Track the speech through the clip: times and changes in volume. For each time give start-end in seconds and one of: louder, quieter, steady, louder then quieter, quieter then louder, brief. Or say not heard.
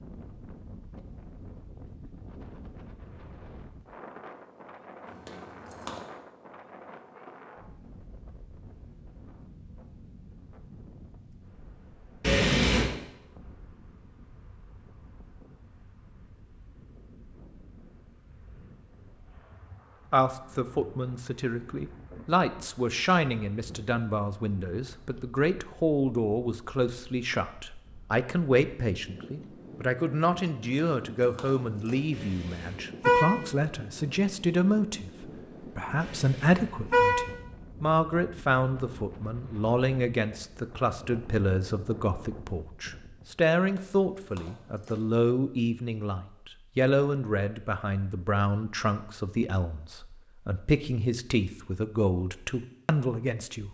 20.1-53.6 steady.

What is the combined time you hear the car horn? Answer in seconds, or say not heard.
3 s.